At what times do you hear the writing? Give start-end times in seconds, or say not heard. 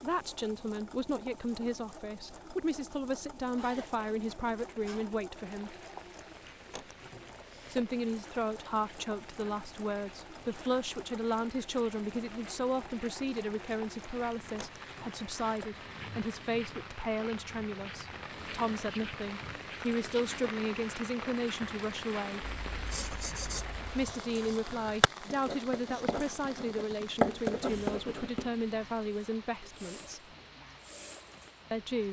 22.4-28.5.